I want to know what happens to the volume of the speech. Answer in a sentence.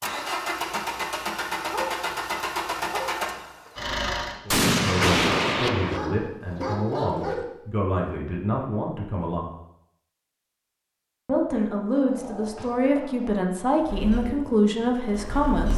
The loudness of the speech goes up.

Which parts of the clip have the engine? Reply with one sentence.
You can hear the engine from 0.0 to 4.4 s and from 13.8 to 15.7 s.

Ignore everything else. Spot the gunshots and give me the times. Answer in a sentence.
The gunshots can be heard from 4.5 to 6.0 s.